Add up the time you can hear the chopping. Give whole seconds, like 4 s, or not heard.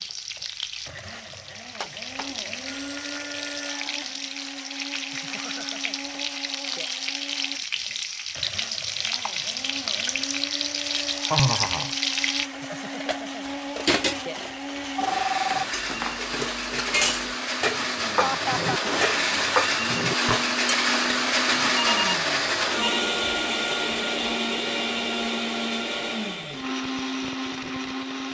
not heard.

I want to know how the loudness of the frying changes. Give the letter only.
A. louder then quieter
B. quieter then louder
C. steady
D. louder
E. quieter
D.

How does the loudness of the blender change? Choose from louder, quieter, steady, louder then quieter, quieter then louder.
louder.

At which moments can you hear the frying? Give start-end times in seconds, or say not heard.
0.0-12.4.